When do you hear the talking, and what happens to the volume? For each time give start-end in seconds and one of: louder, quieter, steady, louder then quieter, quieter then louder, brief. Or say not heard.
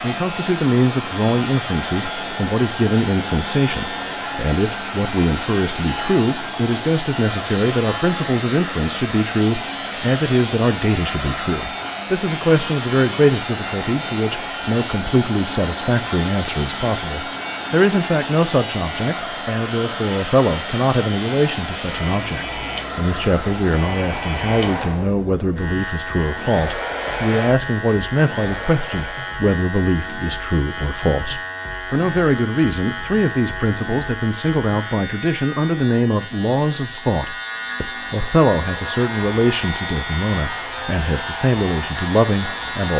0.0-42.9 steady.